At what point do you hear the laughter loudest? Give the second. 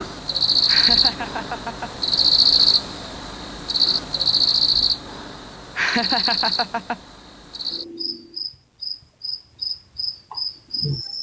6 s.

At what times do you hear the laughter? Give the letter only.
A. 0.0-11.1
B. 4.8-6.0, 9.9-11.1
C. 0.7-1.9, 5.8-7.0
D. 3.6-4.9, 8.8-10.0
C.